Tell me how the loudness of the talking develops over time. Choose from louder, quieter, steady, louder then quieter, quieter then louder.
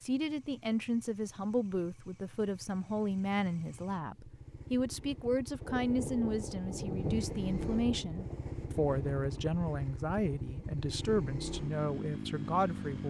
steady.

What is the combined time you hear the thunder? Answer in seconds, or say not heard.
4 s.